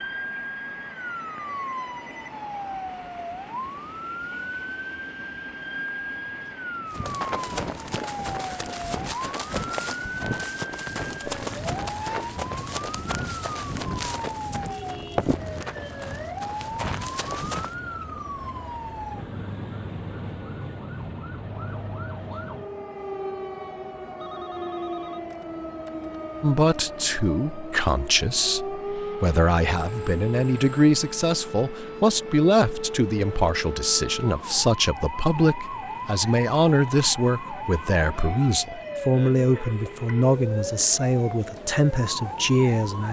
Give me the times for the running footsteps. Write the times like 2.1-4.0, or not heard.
6.9-17.8.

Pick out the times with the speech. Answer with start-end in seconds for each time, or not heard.
26.4-43.0.